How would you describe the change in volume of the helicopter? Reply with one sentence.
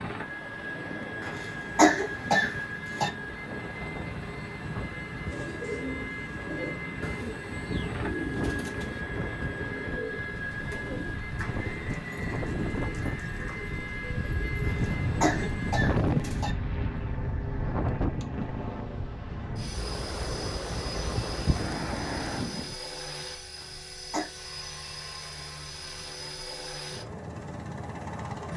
The loudness of the helicopter stays about the same.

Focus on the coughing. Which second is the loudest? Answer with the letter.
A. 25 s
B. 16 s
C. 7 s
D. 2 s
D.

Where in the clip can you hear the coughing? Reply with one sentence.
The coughing can be heard from 1.2 to 3.1 s, from 14.7 to 16.5 s and from 23.6 to 24.3 s.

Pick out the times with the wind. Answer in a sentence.
The wind can be heard from 0.1 to 22.8 s.